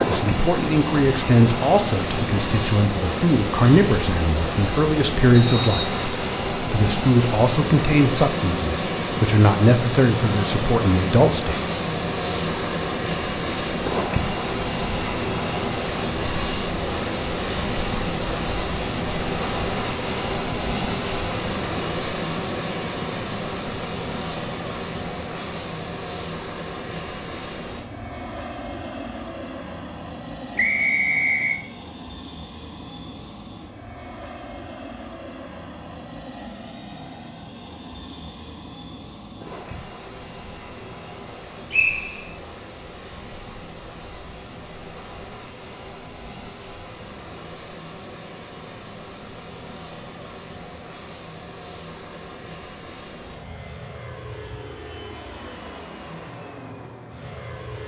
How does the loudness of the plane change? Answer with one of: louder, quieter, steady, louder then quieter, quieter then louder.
quieter.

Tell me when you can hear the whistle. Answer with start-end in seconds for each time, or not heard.
5.3-6.0, 30.6-31.6, 41.7-42.4.